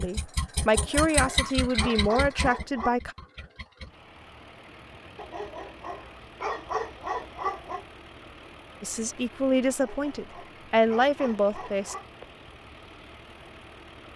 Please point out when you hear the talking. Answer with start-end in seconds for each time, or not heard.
0.0-3.1, 8.8-11.9.